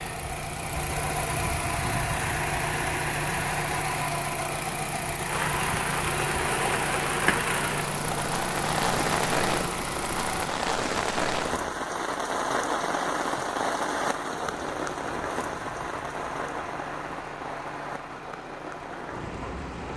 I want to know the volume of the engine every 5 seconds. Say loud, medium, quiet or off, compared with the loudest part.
loud, loud, medium, quiet.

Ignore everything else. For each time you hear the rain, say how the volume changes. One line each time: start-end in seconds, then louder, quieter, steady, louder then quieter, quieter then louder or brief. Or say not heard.
5.2-19.9 quieter.